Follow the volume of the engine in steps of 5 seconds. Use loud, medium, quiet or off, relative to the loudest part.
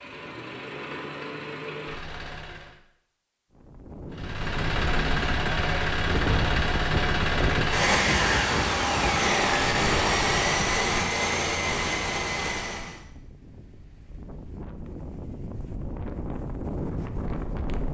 medium, loud, loud, off.